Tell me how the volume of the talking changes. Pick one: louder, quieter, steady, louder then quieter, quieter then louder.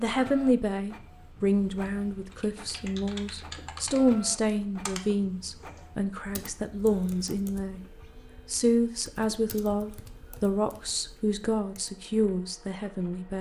steady.